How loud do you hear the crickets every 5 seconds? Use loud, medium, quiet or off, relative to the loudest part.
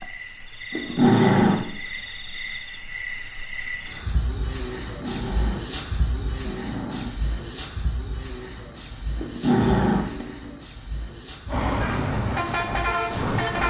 loud, loud, medium.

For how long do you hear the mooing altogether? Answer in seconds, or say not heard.
not heard.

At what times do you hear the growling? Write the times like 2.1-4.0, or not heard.
0.7-1.7, 4.8-7.2, 9.2-10.6.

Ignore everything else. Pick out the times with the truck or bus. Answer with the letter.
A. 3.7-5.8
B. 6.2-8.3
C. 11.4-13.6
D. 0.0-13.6
C.